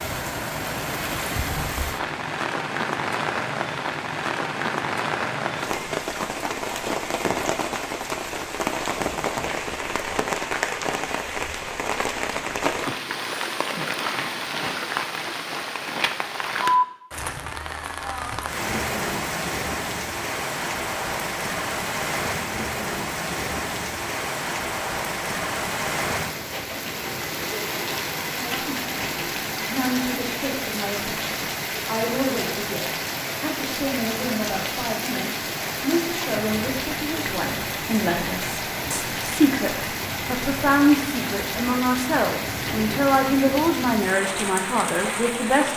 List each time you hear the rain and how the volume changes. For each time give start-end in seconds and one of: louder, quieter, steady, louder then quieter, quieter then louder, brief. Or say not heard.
0.0-45.7 steady.